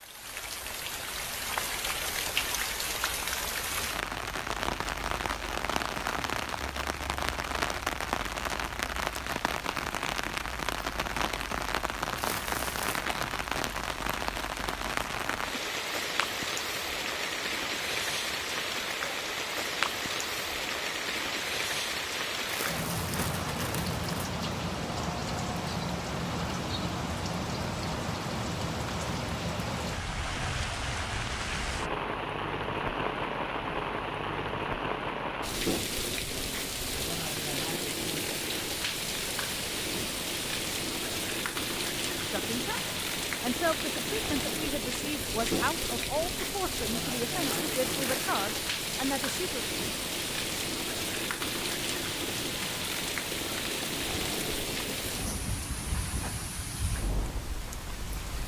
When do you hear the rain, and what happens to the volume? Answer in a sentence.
You can hear the rain from 0.0 to 58.4 s, at a steady volume.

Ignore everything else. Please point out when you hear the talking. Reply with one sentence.
The talking can be heard from 42.3 to 49.6 s.